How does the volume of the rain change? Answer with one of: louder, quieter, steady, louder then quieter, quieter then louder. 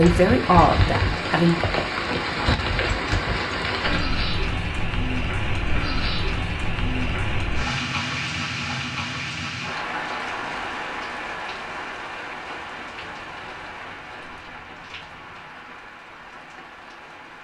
quieter.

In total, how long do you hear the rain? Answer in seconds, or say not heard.
17 s.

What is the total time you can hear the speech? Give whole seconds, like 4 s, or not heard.
2 s.